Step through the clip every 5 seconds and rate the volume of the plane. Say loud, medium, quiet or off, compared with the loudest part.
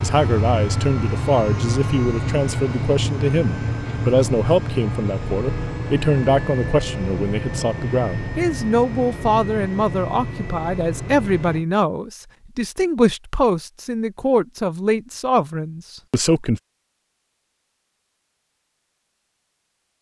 loud, loud, medium, off.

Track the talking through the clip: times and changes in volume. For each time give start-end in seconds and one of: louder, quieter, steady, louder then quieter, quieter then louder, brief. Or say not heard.
0.0-16.6 steady.